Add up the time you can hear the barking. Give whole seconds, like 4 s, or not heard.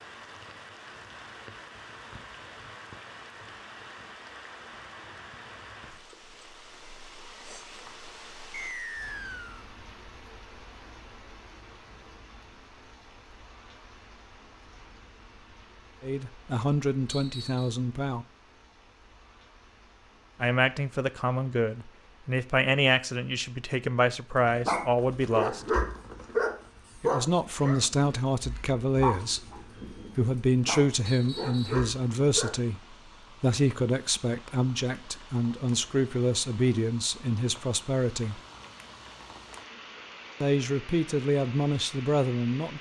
8 s.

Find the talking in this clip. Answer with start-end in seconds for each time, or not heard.
16.0-18.2, 20.4-25.6, 27.0-29.4, 30.1-38.4, 40.4-42.7.